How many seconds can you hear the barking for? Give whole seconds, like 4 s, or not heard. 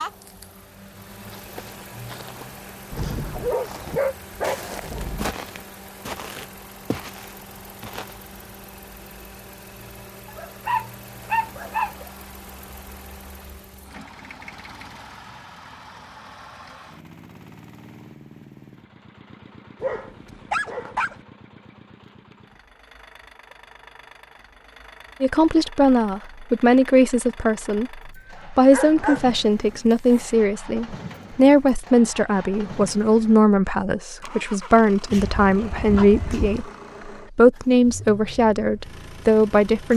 9 s.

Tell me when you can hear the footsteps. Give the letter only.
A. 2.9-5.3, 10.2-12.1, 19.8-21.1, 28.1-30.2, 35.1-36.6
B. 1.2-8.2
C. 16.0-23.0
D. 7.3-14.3
B.